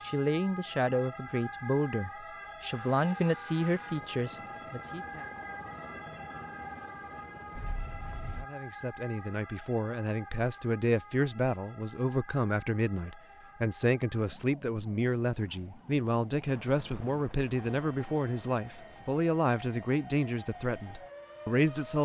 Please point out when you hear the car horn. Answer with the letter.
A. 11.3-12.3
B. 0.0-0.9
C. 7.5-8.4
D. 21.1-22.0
C.